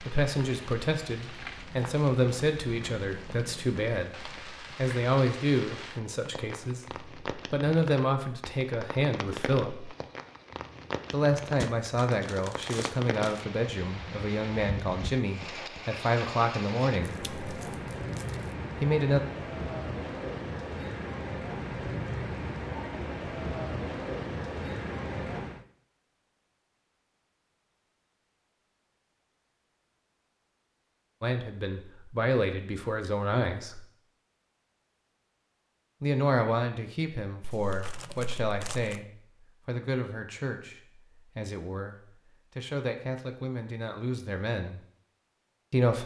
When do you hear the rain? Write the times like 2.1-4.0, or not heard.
0.0-25.6.